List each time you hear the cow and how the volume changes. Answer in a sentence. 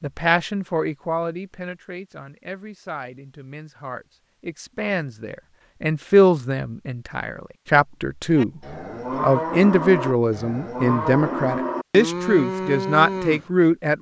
The cow can be heard from 8.3 to 13.5 s, at a steady volume.